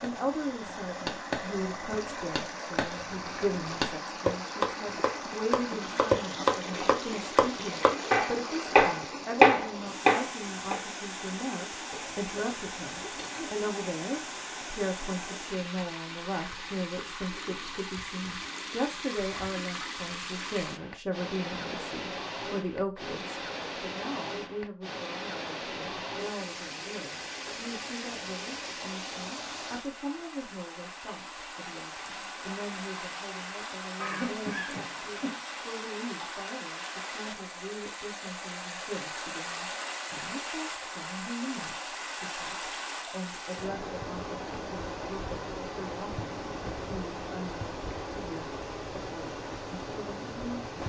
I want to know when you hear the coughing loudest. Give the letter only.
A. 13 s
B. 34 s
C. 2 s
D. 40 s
B.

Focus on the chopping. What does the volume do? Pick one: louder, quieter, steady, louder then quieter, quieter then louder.
louder.